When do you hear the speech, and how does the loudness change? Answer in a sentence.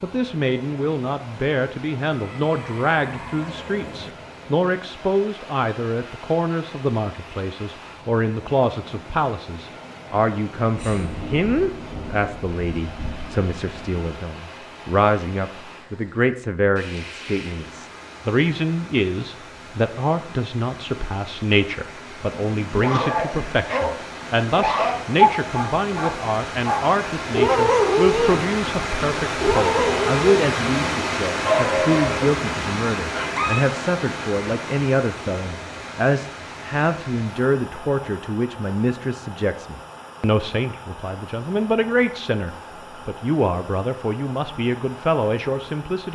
You can hear the speech from 0.0 to 46.1 s, at a steady volume.